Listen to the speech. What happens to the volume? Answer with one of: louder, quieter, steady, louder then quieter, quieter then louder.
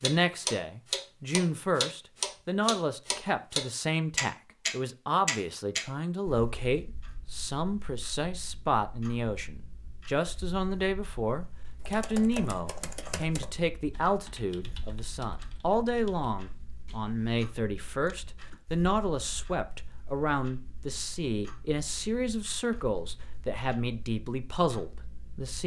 steady.